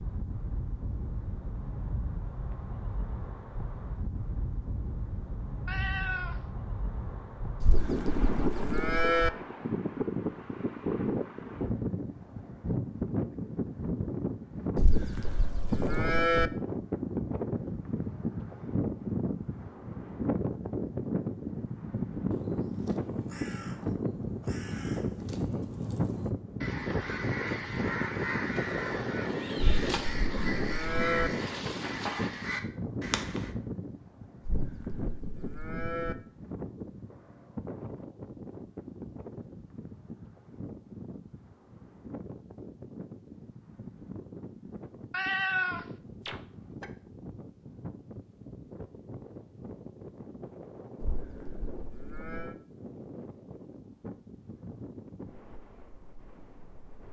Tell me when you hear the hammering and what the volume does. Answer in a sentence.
The hammering can't be heard in this clip.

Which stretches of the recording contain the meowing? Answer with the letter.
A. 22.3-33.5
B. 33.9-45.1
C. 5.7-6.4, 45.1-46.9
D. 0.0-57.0
C.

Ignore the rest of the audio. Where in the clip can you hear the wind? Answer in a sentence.
You can hear the wind from 0.0 to 57.0 s.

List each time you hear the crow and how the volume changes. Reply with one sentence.
The crow can be heard from 22.3 to 33.5 s, getting louder.